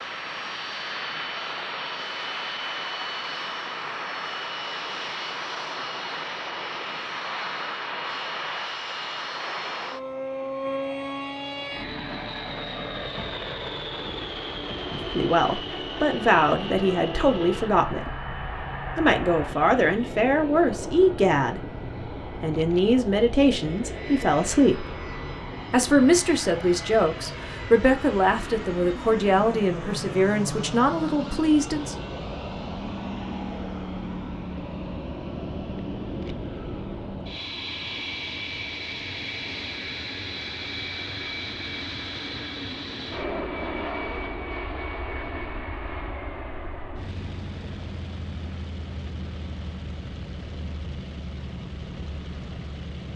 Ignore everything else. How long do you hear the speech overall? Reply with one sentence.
The speech can be heard for 15 seconds in total.